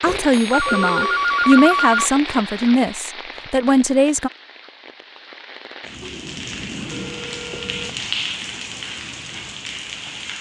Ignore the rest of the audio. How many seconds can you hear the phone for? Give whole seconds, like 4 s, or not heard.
4 s.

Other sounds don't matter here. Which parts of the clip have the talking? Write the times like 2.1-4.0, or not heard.
0.0-4.3.